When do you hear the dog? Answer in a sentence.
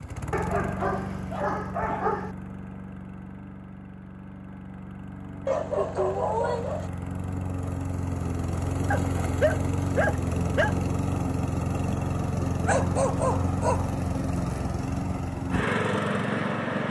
The dog can be heard from 0.3 to 2.4 s, from 5.5 to 6.9 s, from 8.9 to 10.8 s and from 12.7 to 13.9 s.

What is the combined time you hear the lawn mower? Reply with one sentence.
You can hear the lawn mower for 17 seconds altogether.